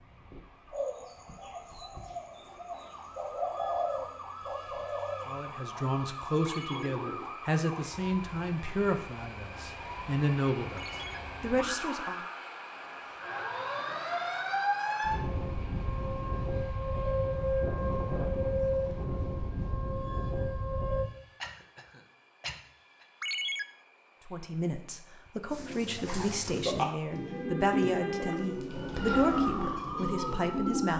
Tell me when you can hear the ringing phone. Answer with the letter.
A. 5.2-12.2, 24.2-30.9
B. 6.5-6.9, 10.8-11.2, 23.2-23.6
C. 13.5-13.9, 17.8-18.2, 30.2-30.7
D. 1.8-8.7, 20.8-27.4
B.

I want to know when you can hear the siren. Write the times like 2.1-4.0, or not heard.
0.0-21.1, 27.1-30.9.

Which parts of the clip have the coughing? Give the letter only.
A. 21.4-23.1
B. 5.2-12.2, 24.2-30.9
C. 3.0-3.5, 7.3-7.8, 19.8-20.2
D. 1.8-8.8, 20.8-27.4
A.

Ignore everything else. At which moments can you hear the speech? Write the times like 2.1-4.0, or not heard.
5.2-12.2, 24.2-30.9.